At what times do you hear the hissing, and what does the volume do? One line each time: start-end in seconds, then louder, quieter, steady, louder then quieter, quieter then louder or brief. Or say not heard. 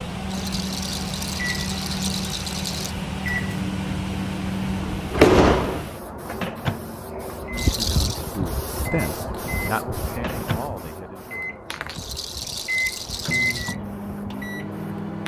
0.0-15.2 louder then quieter.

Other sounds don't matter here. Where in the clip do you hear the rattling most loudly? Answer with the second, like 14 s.
8 s.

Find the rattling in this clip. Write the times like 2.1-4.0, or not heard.
0.3-3.0, 7.5-8.2, 11.9-13.8.